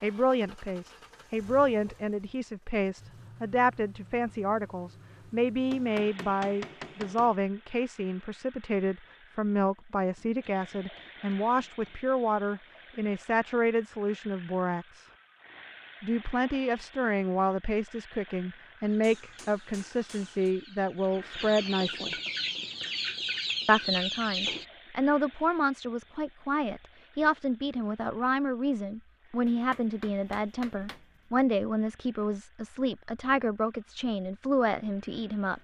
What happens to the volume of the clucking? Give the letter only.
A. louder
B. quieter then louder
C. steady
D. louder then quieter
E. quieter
A.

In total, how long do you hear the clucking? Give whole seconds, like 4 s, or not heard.
6 s.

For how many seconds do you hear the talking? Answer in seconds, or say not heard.
33 s.